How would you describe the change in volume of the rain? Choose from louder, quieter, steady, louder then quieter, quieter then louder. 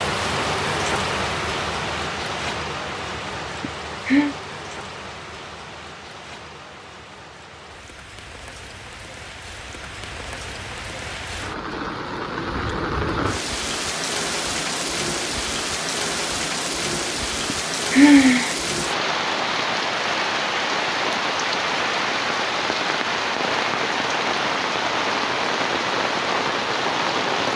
quieter then louder.